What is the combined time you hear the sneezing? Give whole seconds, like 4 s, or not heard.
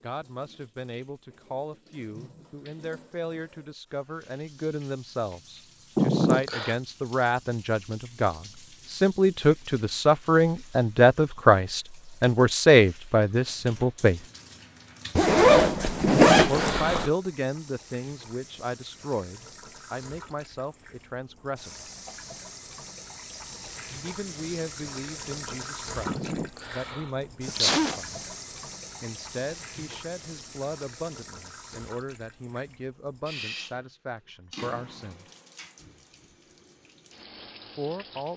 4 s.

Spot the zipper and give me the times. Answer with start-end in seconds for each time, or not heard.
15.2-17.1.